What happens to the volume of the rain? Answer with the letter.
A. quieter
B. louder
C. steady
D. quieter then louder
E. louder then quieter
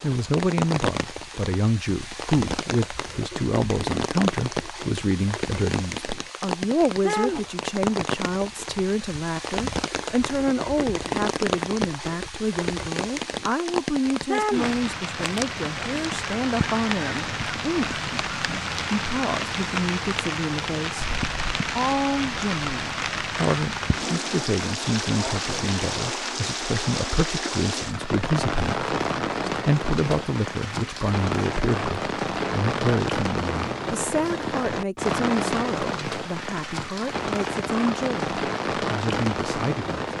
C.